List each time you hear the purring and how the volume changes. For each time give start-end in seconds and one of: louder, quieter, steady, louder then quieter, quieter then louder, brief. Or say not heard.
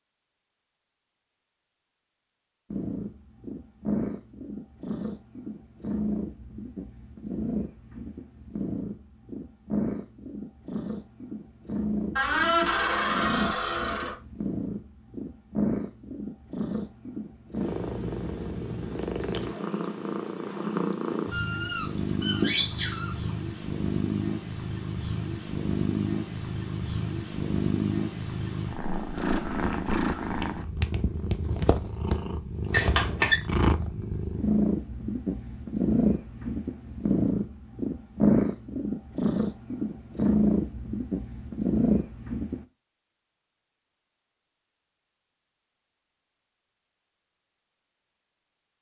2.7-42.6 louder.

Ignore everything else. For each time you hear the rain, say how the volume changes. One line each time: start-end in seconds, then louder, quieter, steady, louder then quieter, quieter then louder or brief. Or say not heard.
not heard.